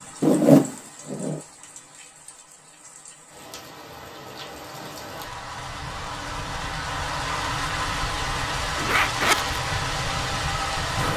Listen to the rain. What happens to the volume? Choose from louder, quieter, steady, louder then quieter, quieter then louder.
louder.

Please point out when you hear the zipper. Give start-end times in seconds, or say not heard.
0.2-1.4, 8.8-9.6.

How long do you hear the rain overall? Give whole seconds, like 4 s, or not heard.
11 s.